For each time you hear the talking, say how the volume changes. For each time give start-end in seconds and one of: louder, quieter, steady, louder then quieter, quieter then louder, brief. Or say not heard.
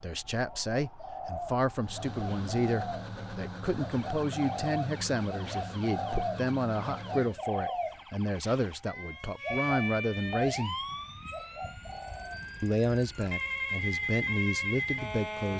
0.0-10.8 steady
12.6-15.5 brief.